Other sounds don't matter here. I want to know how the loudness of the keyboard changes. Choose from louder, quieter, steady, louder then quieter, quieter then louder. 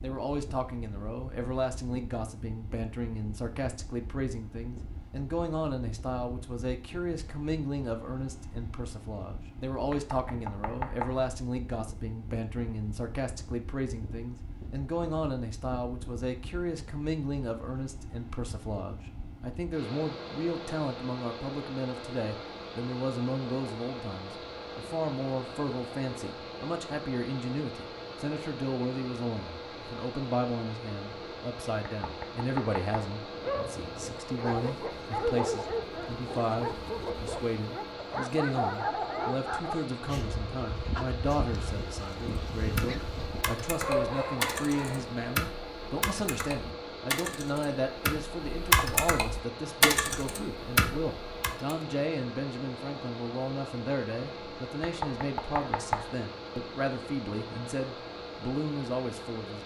louder.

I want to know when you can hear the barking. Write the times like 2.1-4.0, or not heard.
33.4-45.2.